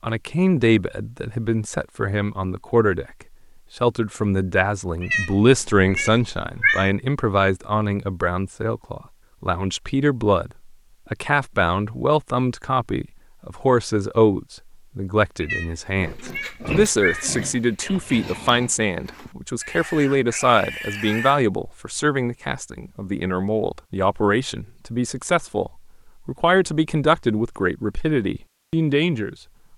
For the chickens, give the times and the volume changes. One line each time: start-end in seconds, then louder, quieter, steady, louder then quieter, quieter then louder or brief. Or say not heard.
not heard.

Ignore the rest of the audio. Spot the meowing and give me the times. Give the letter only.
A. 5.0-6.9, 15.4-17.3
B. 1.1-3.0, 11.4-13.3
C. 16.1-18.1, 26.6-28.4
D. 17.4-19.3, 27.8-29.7
A.